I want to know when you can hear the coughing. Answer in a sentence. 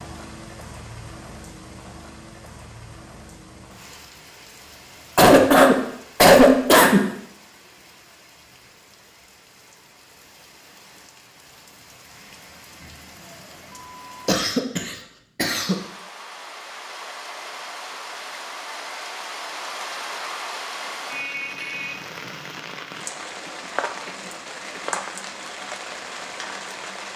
The coughing can be heard from 5.2 to 7.0 s, from 14.2 to 15.8 s and from 23.4 to 25.0 s.